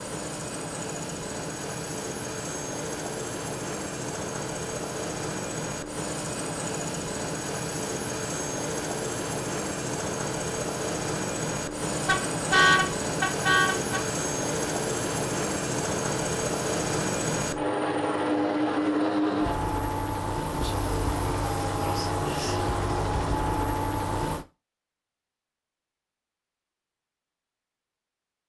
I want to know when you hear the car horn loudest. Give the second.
13 s.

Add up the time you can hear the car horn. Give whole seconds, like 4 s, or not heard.
2 s.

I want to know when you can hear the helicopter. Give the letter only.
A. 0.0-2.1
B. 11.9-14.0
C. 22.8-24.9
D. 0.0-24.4
D.